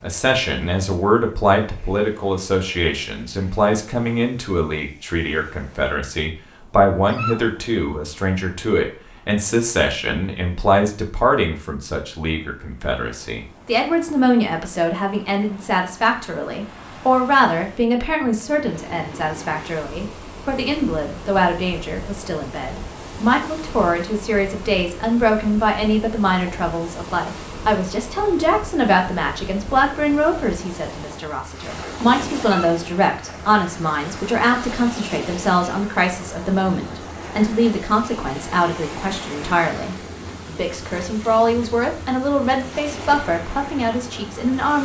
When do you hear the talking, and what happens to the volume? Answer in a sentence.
You can hear the talking from 0.0 to 44.7 s, at a steady volume.